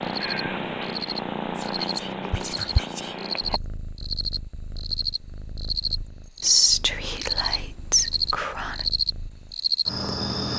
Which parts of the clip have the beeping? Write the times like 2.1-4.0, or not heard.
not heard.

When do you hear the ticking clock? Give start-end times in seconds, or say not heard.
not heard.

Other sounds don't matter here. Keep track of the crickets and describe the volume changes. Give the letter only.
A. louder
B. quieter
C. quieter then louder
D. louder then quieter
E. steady
A.